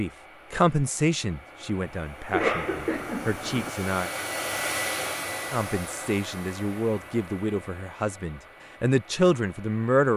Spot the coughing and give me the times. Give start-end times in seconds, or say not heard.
2.3-3.7.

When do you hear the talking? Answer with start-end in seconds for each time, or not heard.
0.0-4.1, 5.5-10.1.